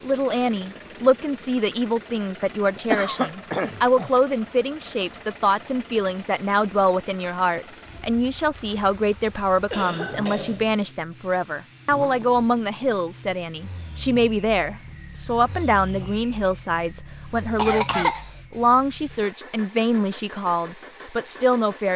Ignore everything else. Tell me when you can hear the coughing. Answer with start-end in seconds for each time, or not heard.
2.8-4.1, 9.7-10.8, 17.6-18.3.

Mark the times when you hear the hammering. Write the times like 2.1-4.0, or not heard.
not heard.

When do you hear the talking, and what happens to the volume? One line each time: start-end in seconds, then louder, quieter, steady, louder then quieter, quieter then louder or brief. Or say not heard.
0.0-21.9 steady.